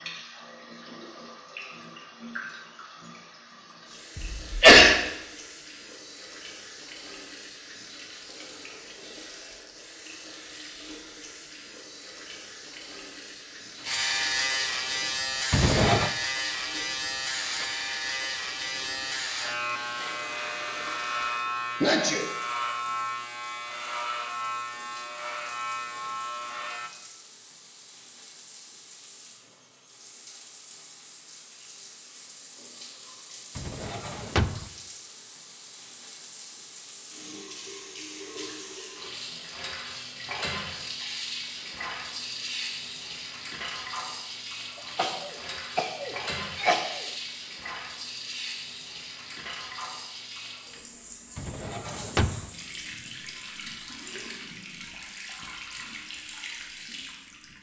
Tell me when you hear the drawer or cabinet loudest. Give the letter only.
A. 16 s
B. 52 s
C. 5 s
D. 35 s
A.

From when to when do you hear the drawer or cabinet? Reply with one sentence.
You can hear the drawer or cabinet from 15.5 to 16.1 s, from 33.5 to 34.7 s and from 51.4 to 52.5 s.